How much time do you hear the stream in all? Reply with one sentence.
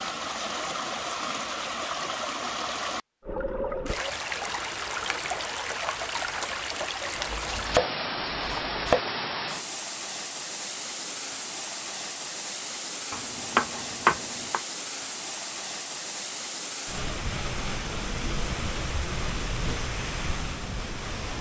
The stream can be heard for 21 seconds in total.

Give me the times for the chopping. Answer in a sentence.
You can hear the chopping from 7.2 to 9.0 s and from 13.1 to 14.6 s.